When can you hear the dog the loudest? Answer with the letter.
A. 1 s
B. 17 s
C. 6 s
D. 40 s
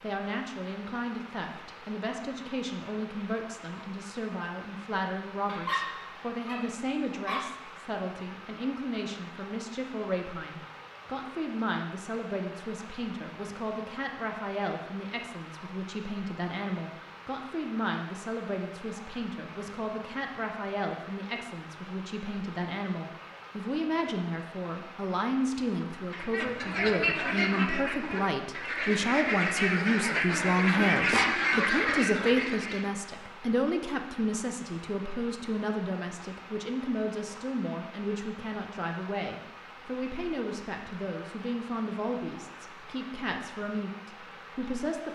C.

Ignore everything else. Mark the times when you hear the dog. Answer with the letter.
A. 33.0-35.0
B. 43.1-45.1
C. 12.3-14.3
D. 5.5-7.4
D.